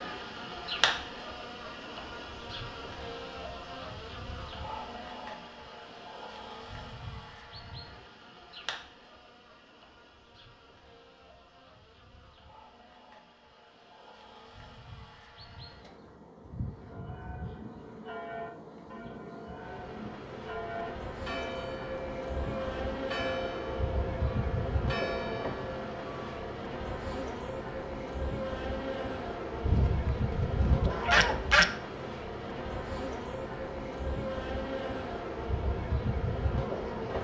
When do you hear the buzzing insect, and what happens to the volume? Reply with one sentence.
The buzzing insect can be heard from 0.0 to 37.1 s, getting quieter then louder.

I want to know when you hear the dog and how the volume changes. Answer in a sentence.
You can't hear the dog here.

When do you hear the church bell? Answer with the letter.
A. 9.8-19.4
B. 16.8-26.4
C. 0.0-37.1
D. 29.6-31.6
B.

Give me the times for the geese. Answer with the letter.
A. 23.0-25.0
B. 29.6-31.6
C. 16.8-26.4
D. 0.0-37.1
B.